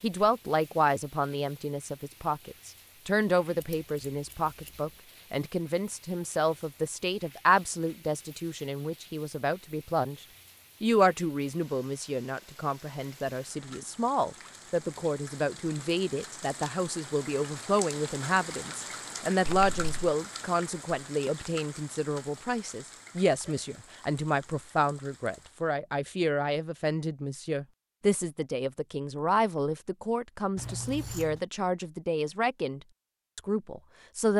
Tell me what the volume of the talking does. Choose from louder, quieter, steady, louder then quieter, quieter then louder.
steady.